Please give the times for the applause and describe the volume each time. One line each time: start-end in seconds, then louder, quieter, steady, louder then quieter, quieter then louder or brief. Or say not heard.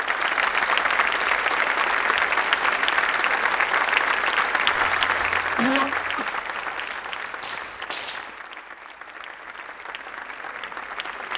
0.0-11.3 quieter.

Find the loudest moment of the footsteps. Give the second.
8 s.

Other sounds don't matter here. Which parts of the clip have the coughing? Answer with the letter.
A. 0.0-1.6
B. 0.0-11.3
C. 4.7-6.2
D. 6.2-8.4
C.